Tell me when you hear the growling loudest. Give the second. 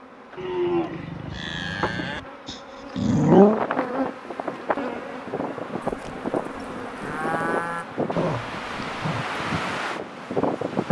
3 s.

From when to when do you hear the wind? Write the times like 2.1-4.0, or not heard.
3.2-10.8.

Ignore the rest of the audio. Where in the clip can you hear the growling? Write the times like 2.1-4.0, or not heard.
2.5-3.6, 8.2-9.2.